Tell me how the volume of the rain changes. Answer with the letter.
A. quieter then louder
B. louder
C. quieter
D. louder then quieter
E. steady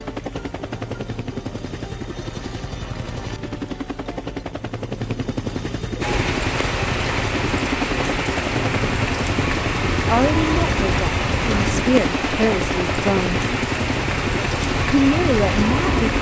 E.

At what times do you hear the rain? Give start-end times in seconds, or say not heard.
6.0-16.1.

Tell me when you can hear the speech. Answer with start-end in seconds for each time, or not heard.
10.1-13.4, 14.9-16.1.